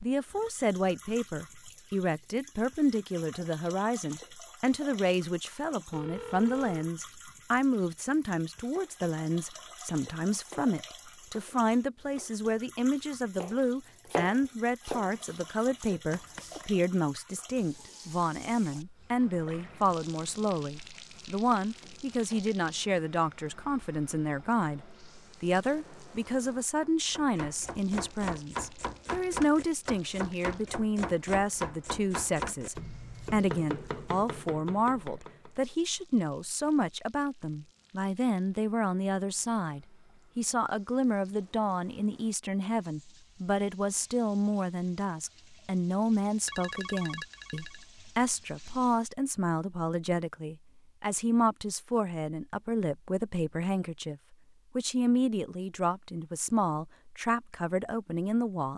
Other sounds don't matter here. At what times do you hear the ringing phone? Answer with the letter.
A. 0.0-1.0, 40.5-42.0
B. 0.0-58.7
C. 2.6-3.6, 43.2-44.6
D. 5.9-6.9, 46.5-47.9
D.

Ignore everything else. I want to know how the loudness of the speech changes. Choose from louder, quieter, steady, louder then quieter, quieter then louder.
steady.